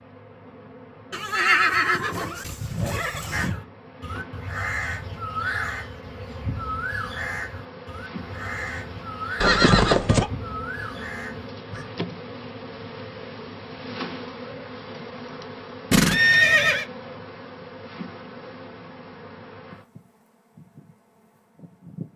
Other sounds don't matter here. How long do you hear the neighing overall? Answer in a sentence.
The neighing can be heard for 4 seconds in total.